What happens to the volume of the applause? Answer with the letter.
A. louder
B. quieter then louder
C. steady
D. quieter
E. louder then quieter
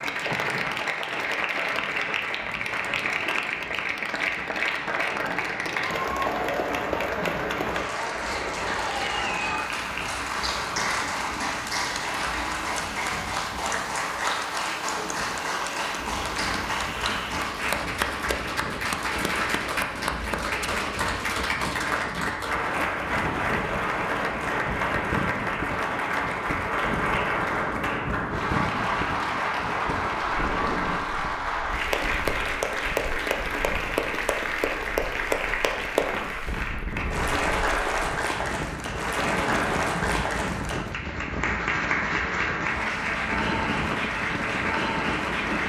C.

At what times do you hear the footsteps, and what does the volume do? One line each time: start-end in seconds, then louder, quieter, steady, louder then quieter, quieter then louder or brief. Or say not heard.
not heard.